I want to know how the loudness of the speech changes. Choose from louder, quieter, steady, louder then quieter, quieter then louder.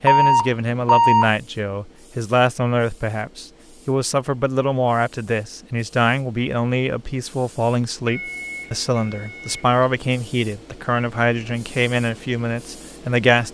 steady.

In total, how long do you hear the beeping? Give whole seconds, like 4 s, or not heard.
3 s.